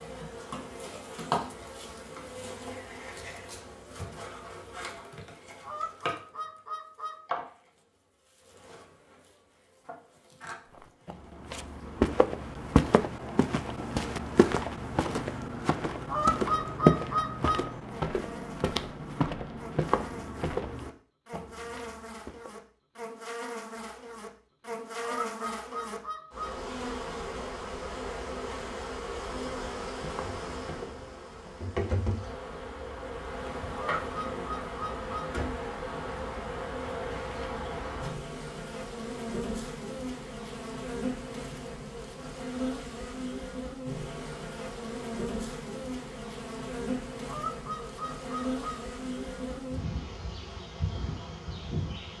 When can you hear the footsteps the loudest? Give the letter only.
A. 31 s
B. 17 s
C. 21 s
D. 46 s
B.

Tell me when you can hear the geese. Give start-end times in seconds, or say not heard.
5.6-7.2, 16.1-17.6, 25.0-26.6, 33.8-35.2, 47.2-48.8.